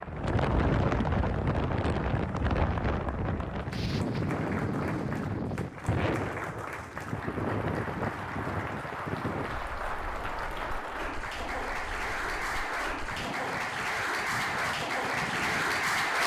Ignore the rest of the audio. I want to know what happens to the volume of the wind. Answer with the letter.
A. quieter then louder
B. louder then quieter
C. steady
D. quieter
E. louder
D.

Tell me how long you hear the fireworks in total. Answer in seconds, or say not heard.
not heard.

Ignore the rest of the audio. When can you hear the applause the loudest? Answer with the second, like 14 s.
16 s.